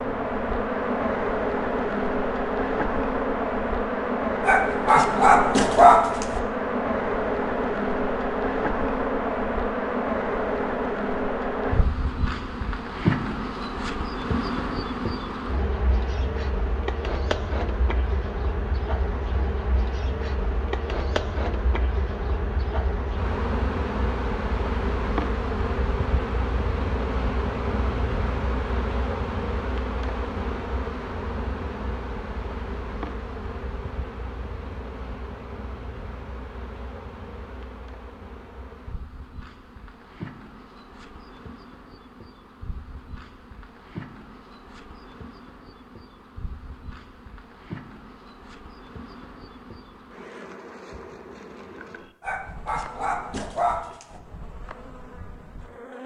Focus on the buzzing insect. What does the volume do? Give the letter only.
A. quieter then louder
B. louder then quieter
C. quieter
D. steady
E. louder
C.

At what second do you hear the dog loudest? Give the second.
6 s.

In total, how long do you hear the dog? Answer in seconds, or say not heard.
4 s.